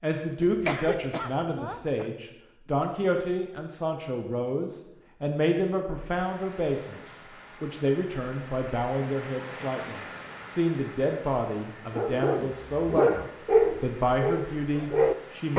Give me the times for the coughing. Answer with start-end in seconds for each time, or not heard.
0.3-2.0.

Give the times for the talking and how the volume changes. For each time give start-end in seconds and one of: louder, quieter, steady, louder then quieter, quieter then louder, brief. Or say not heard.
0.0-15.5 steady.